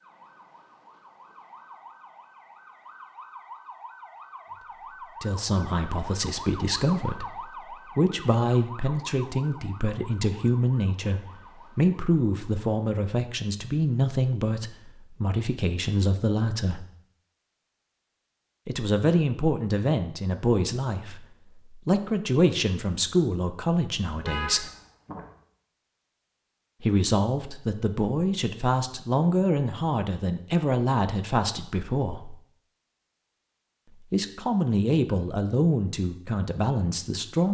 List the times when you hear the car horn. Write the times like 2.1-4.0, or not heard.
24.1-25.2.